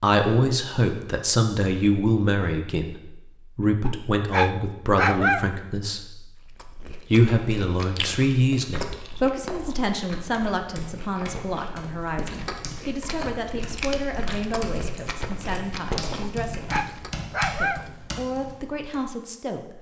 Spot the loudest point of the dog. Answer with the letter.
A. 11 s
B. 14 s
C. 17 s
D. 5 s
D.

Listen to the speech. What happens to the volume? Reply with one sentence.
The loudness of the speech goes down.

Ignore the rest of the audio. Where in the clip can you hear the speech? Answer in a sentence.
You can hear the speech from 0.0 to 6.2 s and from 7.1 to 19.7 s.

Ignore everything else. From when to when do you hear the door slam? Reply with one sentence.
You can't hear the door slam here.